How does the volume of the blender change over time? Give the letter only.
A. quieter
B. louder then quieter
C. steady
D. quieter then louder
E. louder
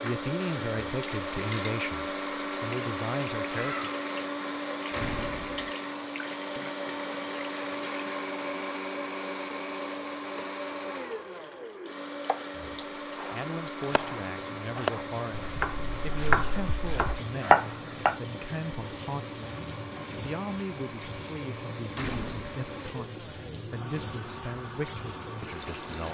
A.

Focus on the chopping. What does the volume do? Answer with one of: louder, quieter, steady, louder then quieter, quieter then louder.
louder.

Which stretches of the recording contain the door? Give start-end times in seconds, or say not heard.
4.9-5.8, 21.9-22.6.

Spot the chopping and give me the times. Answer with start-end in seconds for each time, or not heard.
12.2-18.1.